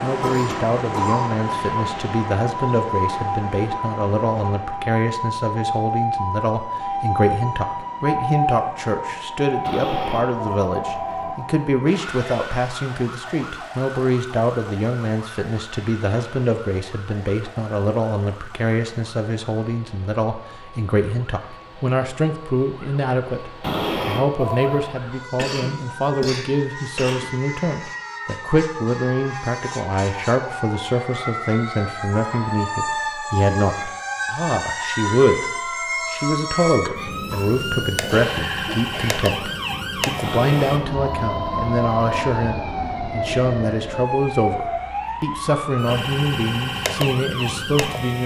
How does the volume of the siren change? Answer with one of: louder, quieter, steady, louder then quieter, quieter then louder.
quieter then louder.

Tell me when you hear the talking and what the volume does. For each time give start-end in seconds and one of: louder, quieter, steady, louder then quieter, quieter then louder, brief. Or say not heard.
0.0-35.5 steady
36.1-48.2 steady.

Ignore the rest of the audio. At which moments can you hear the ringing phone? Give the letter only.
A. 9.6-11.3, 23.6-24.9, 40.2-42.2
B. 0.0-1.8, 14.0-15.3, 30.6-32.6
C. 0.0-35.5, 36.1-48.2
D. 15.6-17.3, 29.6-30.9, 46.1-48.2
A.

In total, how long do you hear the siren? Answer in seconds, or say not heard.
48 s.